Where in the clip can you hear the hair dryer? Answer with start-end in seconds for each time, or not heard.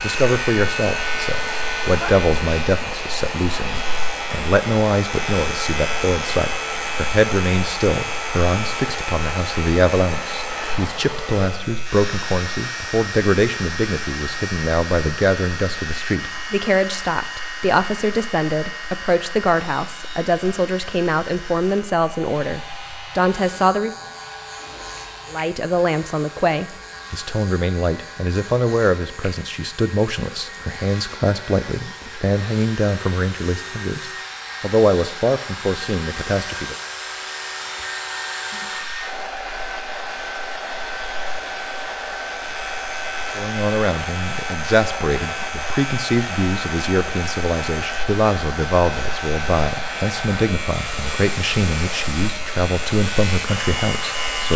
0.0-54.5.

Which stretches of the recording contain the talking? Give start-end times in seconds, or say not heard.
0.0-23.9, 25.3-36.8, 43.4-54.5.